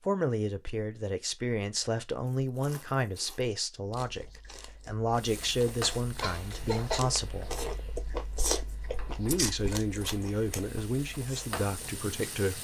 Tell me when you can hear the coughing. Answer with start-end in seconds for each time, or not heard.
6.2-7.0.